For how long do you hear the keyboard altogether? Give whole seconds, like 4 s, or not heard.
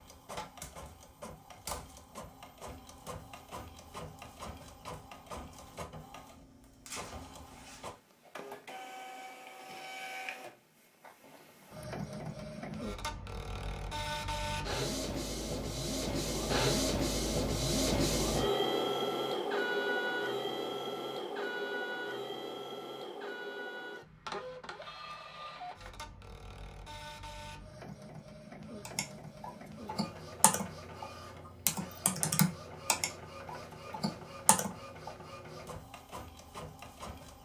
6 s.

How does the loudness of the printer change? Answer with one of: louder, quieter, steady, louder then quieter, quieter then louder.
louder then quieter.